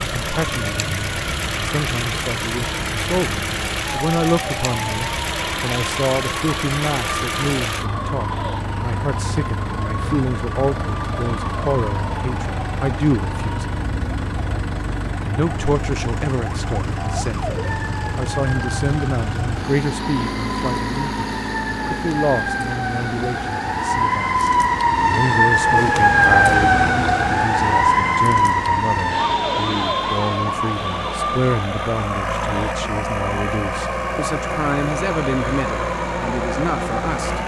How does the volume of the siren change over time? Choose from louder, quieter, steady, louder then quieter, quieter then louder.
louder then quieter.